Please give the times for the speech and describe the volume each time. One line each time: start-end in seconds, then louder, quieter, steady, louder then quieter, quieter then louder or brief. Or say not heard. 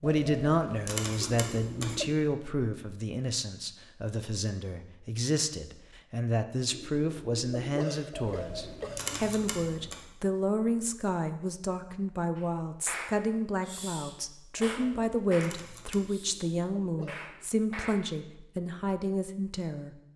0.0-19.9 steady.